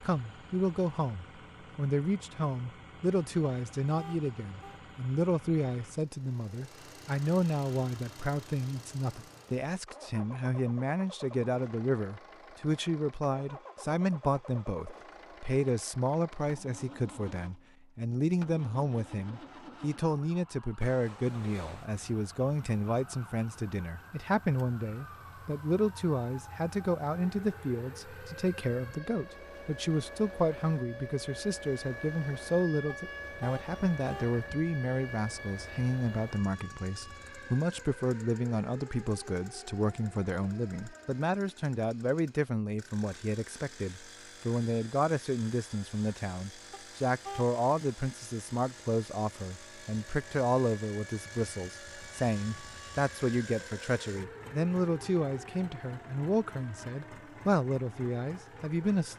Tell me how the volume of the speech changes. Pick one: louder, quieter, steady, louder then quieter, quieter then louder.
steady.